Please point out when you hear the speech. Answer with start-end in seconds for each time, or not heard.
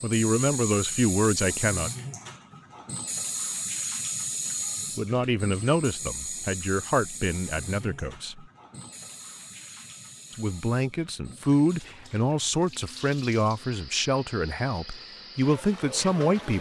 0.0-1.9, 5.0-8.4, 10.3-16.5.